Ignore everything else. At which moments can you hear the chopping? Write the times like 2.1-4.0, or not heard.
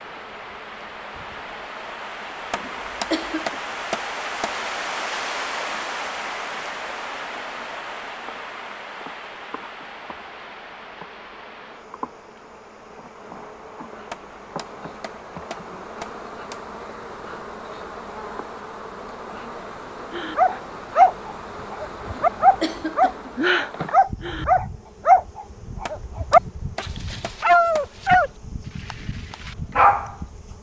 2.5-4.6, 14.1-16.6, 25.9-27.9.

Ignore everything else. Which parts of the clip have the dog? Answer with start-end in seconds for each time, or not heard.
20.1-28.3, 28.9-30.1.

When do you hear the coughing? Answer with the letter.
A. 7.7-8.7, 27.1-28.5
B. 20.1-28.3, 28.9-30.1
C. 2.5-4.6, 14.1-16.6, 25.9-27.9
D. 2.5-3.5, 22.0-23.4
D.